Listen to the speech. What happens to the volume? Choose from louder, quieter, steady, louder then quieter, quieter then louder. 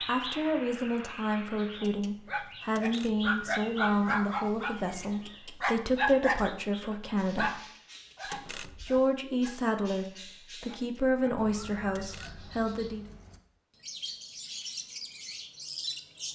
steady.